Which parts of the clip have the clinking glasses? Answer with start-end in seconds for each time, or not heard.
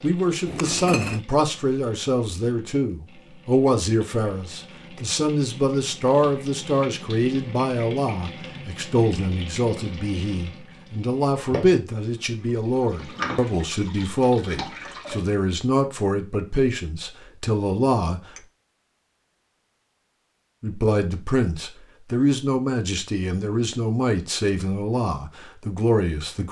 0.5-1.2.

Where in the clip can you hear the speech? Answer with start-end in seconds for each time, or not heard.
0.0-18.3, 20.6-26.4.